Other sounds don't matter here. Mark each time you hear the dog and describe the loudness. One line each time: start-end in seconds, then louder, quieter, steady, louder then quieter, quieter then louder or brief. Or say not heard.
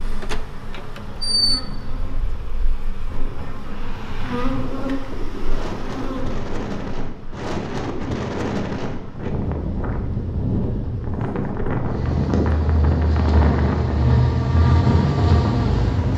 not heard.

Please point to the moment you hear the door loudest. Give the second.
1 s.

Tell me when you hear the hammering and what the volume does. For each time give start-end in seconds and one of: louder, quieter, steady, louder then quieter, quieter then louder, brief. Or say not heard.
not heard.